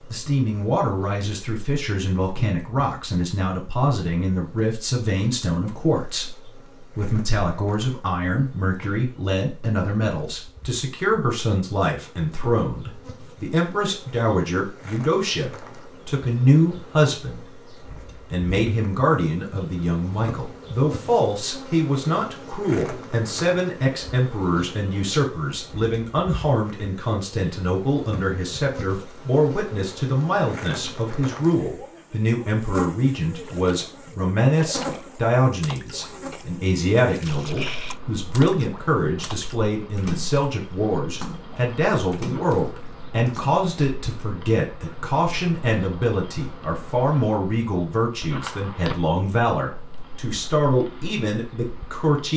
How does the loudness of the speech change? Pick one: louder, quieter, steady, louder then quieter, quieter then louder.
steady.